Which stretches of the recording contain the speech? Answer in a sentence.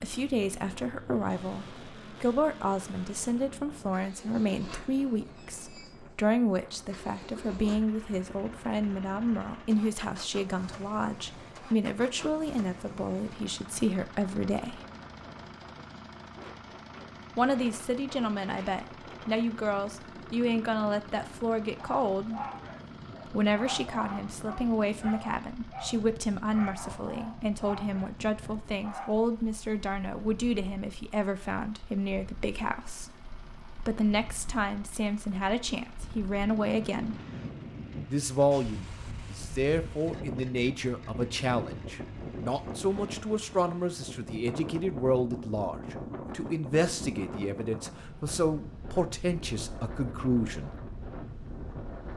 You can hear the speech from 0.0 to 14.8 s, from 17.4 to 22.4 s, from 23.3 to 37.2 s and from 38.1 to 50.8 s.